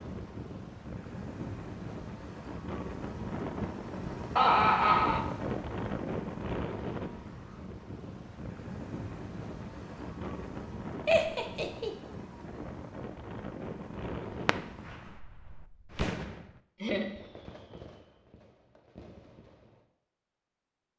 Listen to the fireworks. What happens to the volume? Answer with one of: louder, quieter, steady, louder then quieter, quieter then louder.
louder then quieter.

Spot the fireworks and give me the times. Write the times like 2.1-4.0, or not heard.
14.2-19.9.